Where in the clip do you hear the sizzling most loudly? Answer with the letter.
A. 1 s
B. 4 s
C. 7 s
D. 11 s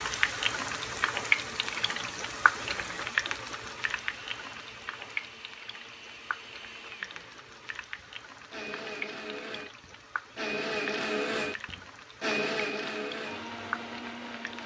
A.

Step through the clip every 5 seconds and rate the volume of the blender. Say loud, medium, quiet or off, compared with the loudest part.
quiet, medium, loud.